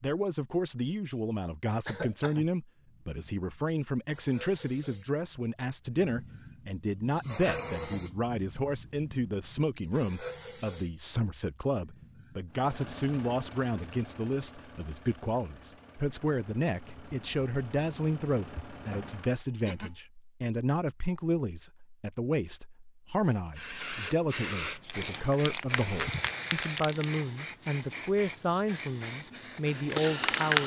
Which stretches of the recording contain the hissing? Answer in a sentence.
The hissing can be heard from 2.8 to 13.3 s and from 23.6 to 30.6 s.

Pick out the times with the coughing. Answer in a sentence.
You can hear the coughing from 1.9 to 2.5 s and from 19.2 to 19.9 s.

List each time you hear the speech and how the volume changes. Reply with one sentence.
The speech can be heard from 0.0 to 30.6 s, at a steady volume.